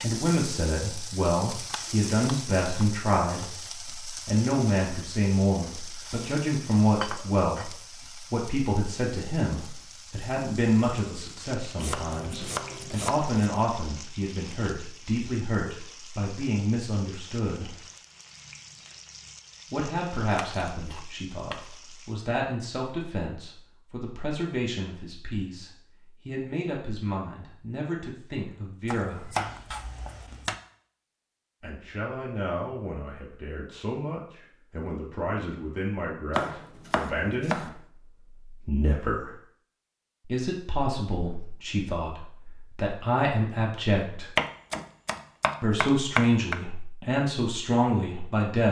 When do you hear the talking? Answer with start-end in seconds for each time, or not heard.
0.0-17.8, 19.7-29.3, 31.6-39.4, 40.2-44.3, 45.6-48.6.